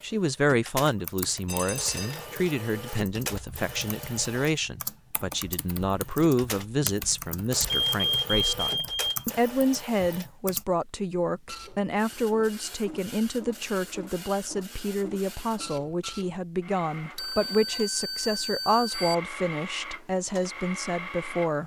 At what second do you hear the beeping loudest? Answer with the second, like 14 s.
8 s.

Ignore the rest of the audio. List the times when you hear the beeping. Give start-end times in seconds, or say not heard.
1.4-2.3, 7.7-9.1, 17.1-19.1.